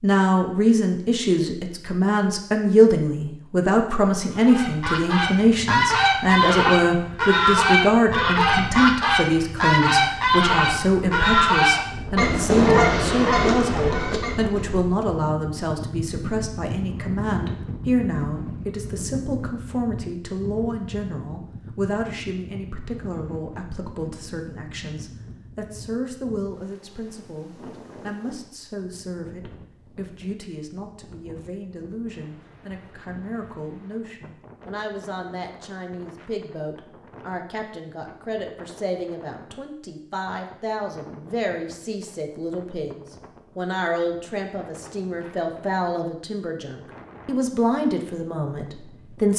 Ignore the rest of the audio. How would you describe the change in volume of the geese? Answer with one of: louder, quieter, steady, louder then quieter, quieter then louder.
steady.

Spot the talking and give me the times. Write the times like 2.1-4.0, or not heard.
0.0-49.3.